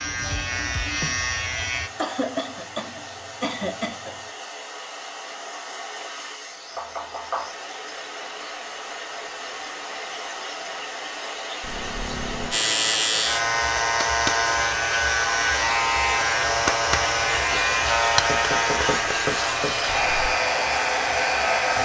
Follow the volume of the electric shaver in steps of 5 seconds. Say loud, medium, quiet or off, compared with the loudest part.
medium, off, loud, loud, medium.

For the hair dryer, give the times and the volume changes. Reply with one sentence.
The hair dryer can be heard from 0.0 to 21.8 s, getting louder.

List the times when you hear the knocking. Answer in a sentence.
The knocking can be heard from 6.8 to 7.5 s and from 18.2 to 20.3 s.